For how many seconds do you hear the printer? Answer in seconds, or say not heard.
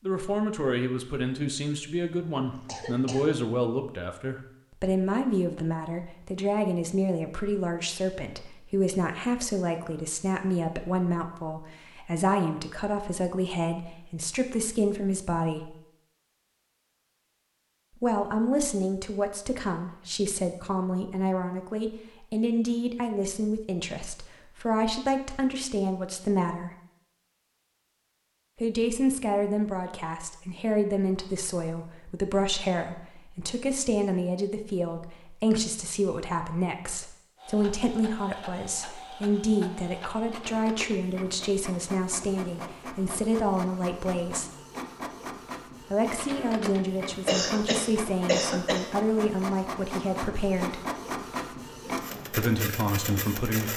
16 s.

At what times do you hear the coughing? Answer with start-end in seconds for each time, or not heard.
2.1-3.2, 47.2-48.9.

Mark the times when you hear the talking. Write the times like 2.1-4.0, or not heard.
0.0-15.8, 18.0-26.7, 28.6-44.5, 45.9-50.8, 52.1-53.7.